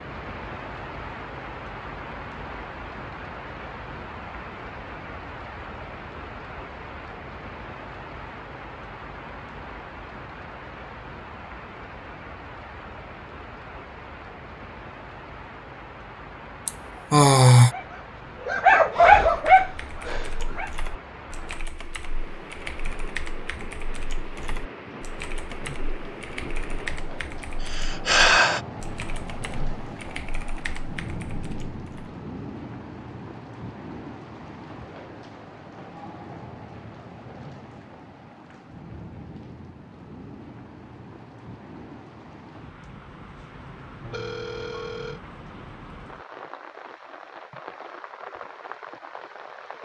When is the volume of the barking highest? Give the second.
19 s.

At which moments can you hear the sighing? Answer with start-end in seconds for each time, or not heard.
16.6-17.7, 27.7-28.6.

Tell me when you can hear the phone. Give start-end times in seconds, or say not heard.
44.0-45.2.